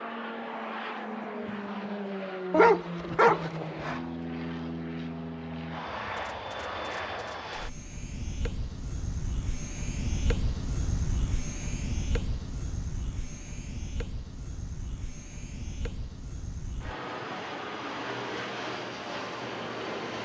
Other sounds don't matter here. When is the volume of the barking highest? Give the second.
3 s.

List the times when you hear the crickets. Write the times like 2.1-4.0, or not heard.
not heard.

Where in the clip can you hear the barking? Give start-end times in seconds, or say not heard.
2.5-4.0.